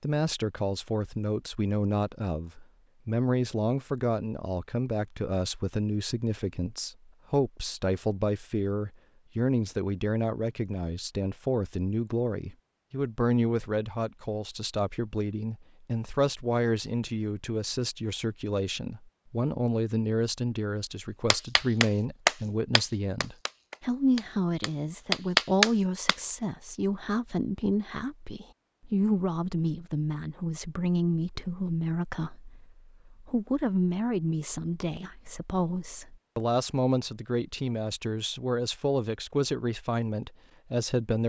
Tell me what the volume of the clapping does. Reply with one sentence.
The loudness of the clapping goes down, then up.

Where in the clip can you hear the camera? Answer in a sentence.
You can't hear the camera here.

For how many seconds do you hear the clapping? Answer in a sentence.
The clapping can be heard for 5 seconds in total.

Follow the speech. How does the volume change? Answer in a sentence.
The loudness of the speech stays about the same.